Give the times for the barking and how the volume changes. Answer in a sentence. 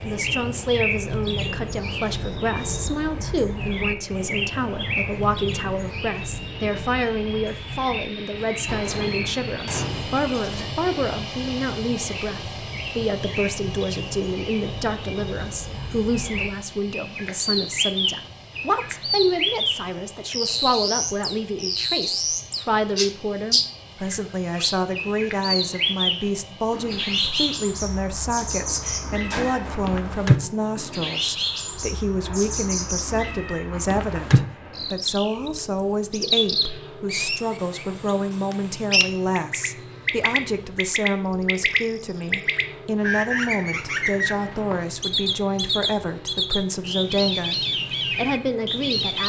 You can't hear the barking here.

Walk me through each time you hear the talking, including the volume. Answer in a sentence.
The talking can be heard from 0.0 to 49.2 s, at a steady volume.